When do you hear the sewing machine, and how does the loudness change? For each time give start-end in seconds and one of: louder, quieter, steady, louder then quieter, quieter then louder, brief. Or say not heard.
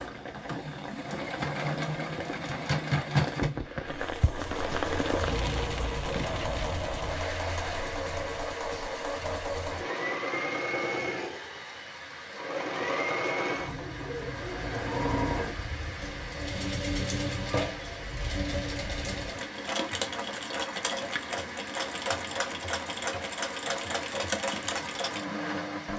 0.0-25.9 steady.